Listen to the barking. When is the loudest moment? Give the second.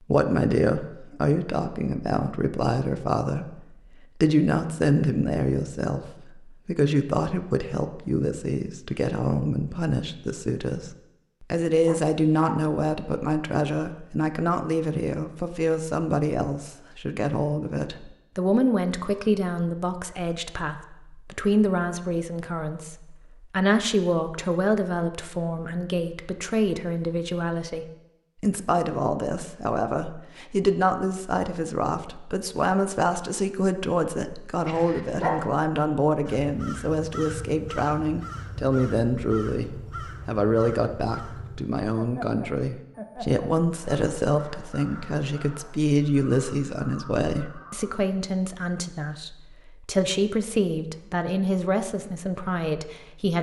35 s.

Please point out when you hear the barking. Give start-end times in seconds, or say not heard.
11.8-12.7, 34.6-35.5.